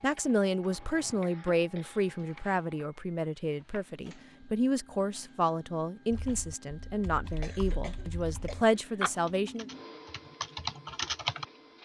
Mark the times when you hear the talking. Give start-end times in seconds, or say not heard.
0.0-9.7.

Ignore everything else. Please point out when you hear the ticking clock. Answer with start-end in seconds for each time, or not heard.
not heard.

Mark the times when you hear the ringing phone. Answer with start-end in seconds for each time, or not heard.
not heard.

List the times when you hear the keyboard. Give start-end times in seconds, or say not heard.
6.1-11.4.